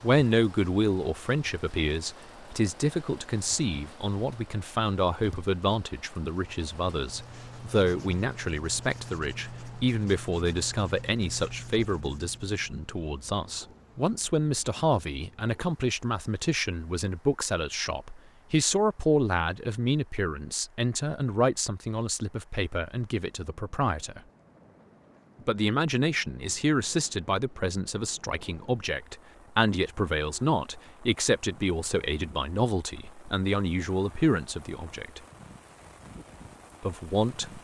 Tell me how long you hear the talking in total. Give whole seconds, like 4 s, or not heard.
35 s.